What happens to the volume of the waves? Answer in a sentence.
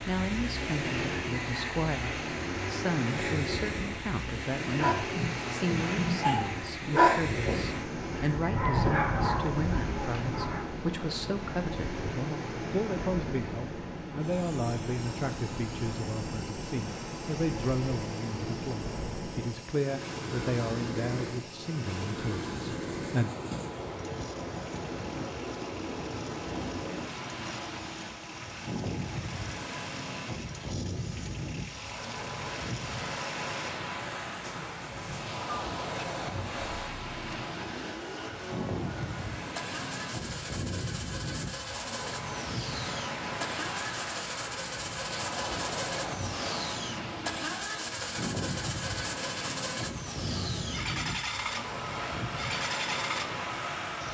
The volume of the waves stays about the same.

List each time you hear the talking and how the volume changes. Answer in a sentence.
You can hear the talking from 0.1 to 23.3 s, at a steady volume.